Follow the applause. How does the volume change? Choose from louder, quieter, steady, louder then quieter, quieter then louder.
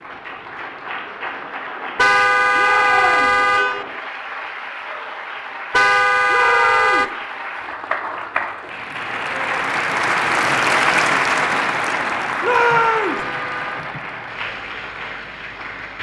louder then quieter.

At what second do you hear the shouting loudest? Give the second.
13 s.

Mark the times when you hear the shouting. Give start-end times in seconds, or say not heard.
2.5-3.4, 6.2-7.1, 12.4-13.2.